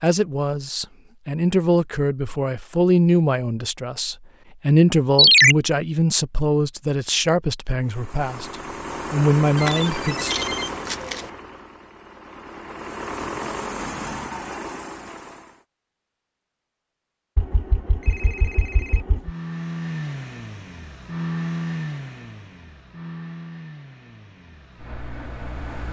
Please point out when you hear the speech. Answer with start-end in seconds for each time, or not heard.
0.0-10.3.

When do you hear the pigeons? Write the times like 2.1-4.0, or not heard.
not heard.